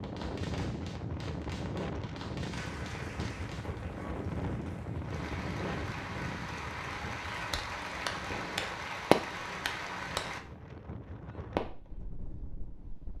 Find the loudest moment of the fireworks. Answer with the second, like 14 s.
9 s.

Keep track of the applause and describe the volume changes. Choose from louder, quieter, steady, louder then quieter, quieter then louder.
louder.